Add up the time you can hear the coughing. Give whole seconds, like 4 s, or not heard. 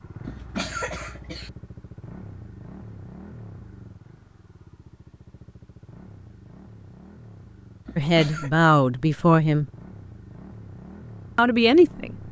2 s.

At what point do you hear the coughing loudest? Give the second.
1 s.